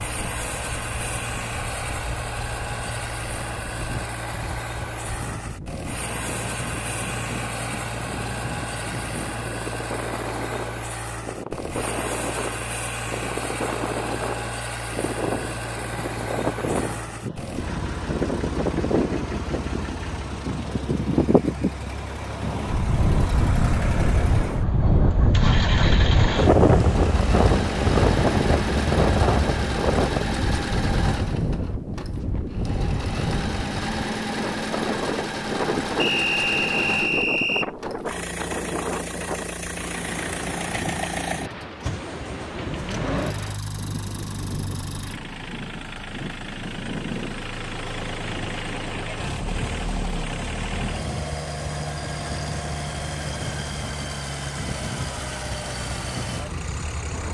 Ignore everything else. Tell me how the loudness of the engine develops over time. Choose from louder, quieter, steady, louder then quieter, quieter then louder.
steady.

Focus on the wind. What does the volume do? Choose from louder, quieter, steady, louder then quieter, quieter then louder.
louder then quieter.